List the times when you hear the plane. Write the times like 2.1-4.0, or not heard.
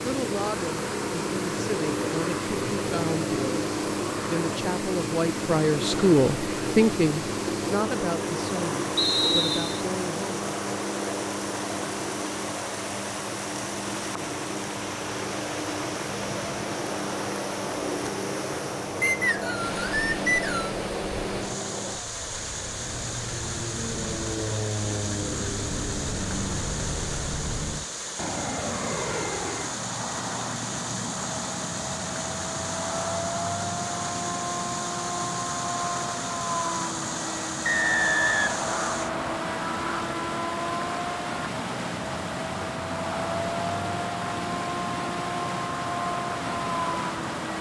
0.0-47.5.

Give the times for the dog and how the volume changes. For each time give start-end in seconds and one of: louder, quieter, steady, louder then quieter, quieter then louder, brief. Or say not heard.
not heard.